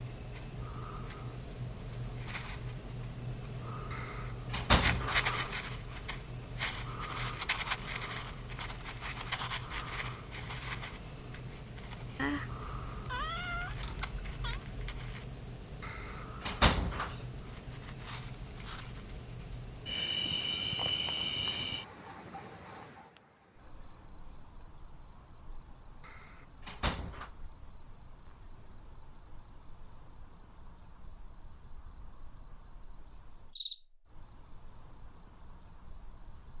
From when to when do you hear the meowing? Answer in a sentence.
You can hear the meowing from 12.2 to 14.6 s.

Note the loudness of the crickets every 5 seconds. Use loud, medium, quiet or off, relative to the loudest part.
loud, loud, loud, loud, loud, quiet, quiet, quiet.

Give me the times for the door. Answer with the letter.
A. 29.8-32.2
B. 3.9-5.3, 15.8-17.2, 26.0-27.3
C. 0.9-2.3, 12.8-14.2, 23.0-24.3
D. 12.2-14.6
B.